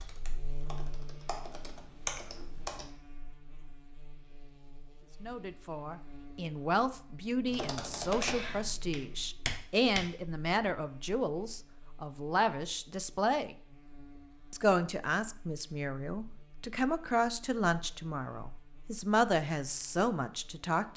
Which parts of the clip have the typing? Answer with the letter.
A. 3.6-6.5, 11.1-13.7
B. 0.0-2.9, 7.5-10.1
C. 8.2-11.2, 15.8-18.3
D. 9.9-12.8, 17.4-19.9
B.